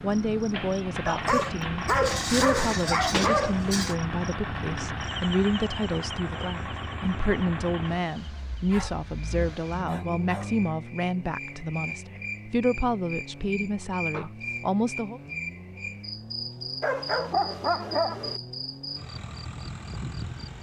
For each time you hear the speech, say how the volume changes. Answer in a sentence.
You can hear the speech from 0.0 to 15.2 s, at a steady volume.